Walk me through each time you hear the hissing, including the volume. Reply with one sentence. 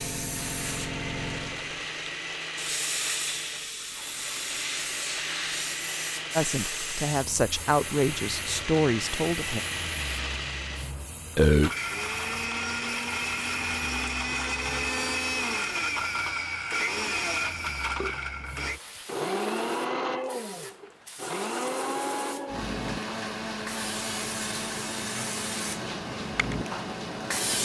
The hissing can be heard from 0.0 to 27.6 s, getting quieter then louder.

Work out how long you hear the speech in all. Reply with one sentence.
You can hear the speech for 3 seconds altogether.